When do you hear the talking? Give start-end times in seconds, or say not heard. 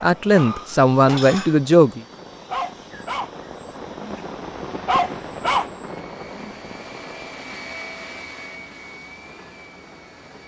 0.0-2.0.